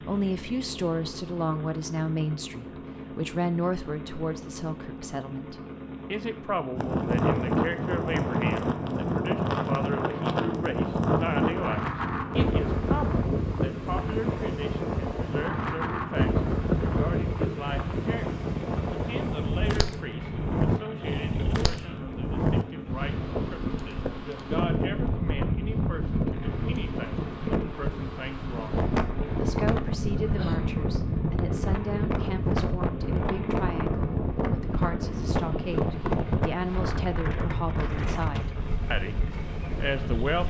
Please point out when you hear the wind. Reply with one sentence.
You can hear the wind from 6.8 to 40.4 s.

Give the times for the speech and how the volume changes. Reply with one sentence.
You can hear the speech from 0.0 to 28.8 s, getting quieter; from 29.4 to 39.1 s, at a steady volume; and briefly from 39.8 to 40.4 s.